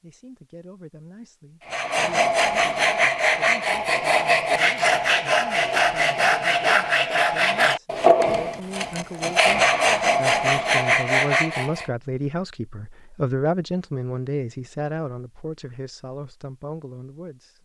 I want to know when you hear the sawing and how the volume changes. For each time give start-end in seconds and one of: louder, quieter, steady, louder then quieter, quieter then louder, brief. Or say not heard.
1.6-11.8 steady.